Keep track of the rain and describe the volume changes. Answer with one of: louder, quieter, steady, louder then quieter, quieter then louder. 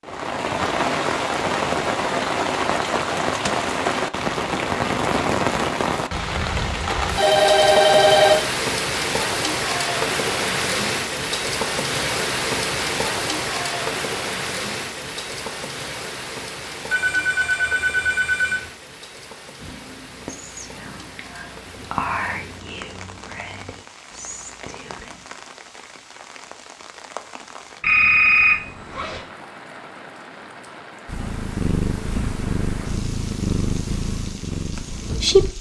quieter.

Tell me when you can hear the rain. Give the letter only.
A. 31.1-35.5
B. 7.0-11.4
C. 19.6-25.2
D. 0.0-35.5
D.